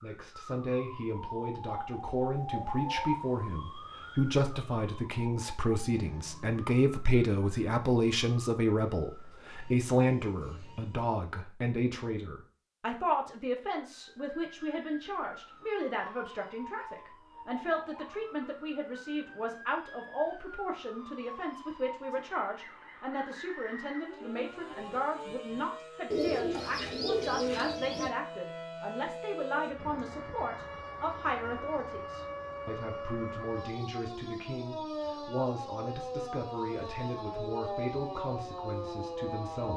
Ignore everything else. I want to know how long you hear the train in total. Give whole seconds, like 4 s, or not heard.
not heard.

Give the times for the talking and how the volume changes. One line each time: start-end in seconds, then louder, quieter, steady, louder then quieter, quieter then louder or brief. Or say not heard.
0.0-39.7 quieter.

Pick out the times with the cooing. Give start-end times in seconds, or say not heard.
26.1-28.1.